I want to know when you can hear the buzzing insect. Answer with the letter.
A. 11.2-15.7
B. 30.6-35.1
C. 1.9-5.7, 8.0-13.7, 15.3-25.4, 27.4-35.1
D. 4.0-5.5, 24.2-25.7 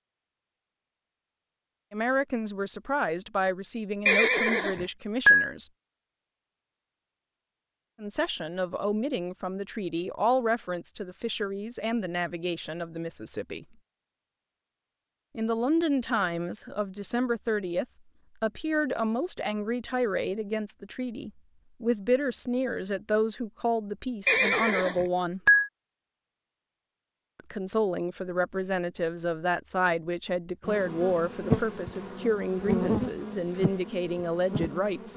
B.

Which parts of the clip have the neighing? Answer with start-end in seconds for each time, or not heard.
4.0-5.5, 24.2-25.7.